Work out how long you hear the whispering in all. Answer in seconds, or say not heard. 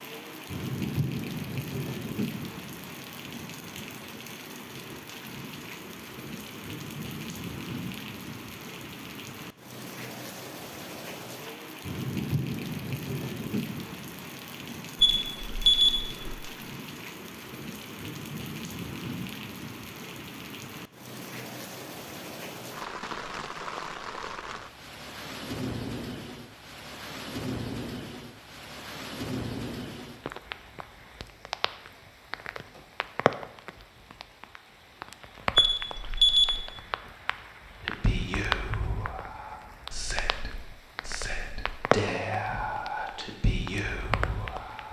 7 s.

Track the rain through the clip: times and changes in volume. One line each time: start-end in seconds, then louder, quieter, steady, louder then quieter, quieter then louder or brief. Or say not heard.
0.0-44.8 steady.